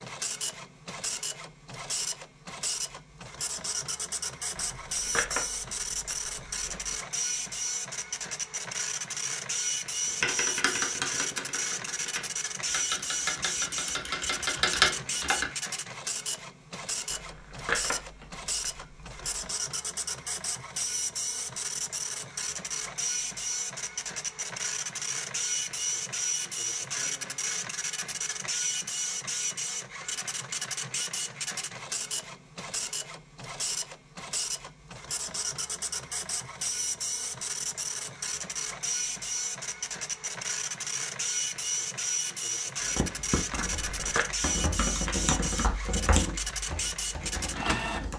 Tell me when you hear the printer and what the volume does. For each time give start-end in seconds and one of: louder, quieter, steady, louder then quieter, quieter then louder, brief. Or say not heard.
0.0-48.1 steady.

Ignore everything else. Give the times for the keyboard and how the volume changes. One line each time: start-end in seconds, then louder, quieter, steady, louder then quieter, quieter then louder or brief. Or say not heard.
10.2-15.4 quieter then louder
42.8-48.1 louder then quieter.